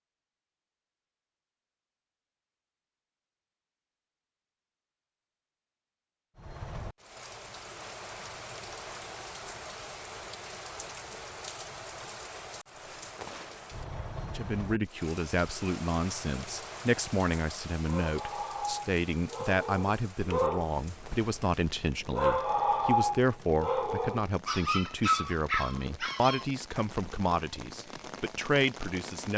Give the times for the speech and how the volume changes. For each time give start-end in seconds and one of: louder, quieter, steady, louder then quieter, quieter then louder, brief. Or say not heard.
14.2-29.3 steady.